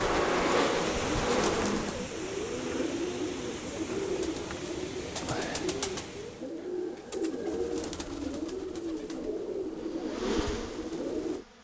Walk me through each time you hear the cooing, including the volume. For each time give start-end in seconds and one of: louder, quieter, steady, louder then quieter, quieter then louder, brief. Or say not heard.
0.0-11.4 steady.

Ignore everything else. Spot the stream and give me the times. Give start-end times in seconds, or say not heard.
0.1-6.5.